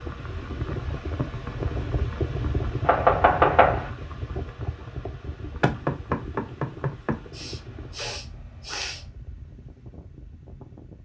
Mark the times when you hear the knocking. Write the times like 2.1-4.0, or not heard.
2.9-3.9, 5.6-7.2.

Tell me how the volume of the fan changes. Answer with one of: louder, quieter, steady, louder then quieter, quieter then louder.
quieter.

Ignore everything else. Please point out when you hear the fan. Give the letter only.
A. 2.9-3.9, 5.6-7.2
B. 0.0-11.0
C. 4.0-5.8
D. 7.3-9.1
B.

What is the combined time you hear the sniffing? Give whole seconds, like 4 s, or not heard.
2 s.